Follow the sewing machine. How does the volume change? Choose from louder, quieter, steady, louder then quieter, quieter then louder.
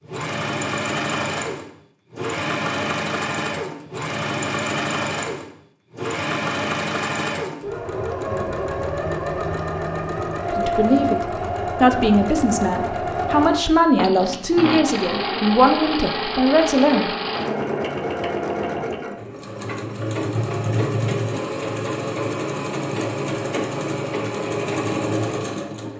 steady.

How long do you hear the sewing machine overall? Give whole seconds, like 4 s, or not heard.
26 s.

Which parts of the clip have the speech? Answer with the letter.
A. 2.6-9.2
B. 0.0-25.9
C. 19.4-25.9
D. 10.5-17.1
D.